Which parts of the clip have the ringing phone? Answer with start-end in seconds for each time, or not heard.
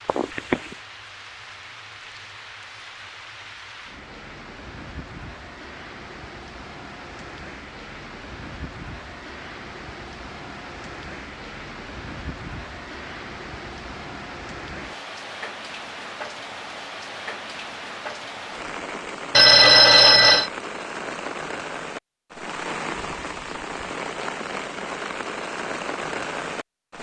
0.1-0.8, 19.4-20.5.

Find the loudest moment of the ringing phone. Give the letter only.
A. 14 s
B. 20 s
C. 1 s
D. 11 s
B.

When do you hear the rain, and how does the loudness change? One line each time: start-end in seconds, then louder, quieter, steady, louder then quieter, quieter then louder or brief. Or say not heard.
0.0-26.9 louder.